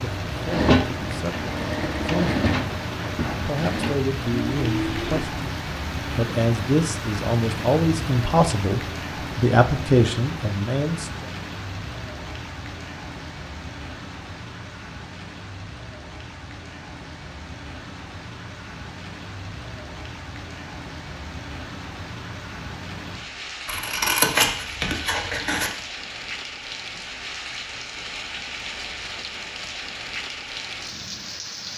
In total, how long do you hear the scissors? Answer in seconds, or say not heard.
2 s.